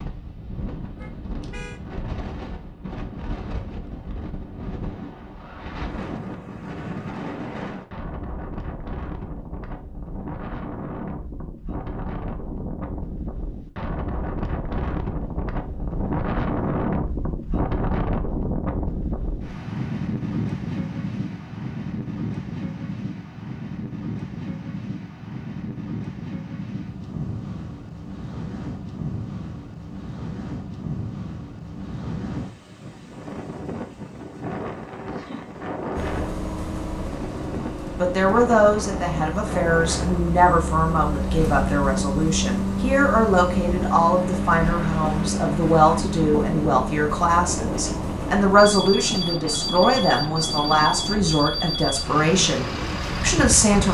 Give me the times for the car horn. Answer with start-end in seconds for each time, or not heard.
0.9-1.8.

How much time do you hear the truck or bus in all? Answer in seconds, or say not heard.
18 s.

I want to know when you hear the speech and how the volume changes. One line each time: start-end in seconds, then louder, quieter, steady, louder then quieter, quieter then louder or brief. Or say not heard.
38.0-53.8 steady.